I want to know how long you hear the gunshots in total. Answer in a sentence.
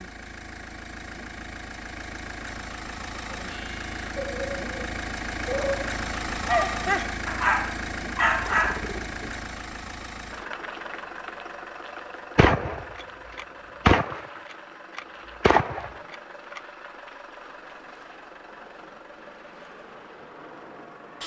The gunshots can be heard for 4 seconds in total.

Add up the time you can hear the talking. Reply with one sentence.
The talking can't be heard in this clip.